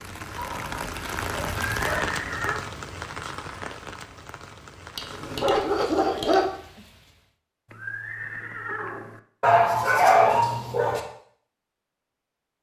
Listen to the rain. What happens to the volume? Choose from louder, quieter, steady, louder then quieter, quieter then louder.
quieter.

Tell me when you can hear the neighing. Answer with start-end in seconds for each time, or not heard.
1.5-2.6, 7.7-9.2.